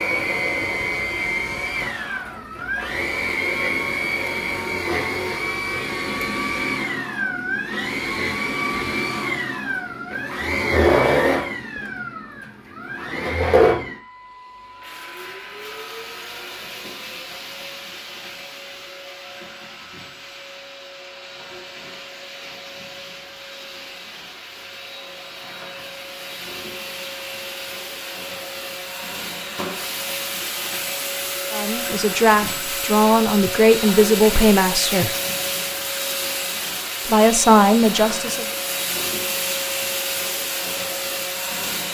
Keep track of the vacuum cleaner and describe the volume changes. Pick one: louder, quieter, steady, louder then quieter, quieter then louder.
quieter then louder.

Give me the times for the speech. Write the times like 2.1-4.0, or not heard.
31.5-35.1, 37.0-38.5.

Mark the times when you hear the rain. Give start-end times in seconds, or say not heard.
not heard.